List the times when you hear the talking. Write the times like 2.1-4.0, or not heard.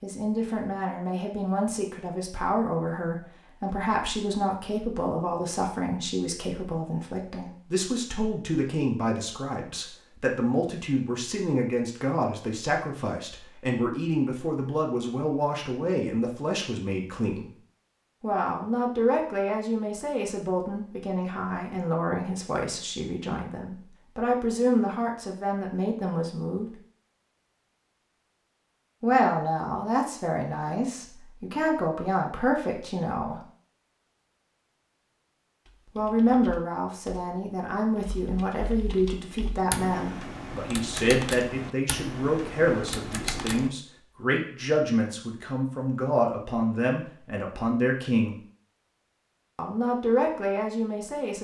0.0-17.5, 18.2-26.8, 29.0-33.4, 36.0-48.4, 49.5-51.3.